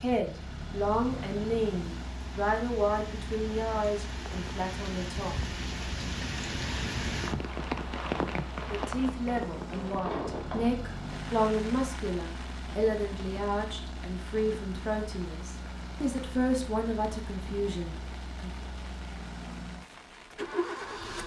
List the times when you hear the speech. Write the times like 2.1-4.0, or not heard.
0.0-5.3, 8.7-18.6.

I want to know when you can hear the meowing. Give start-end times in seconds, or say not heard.
not heard.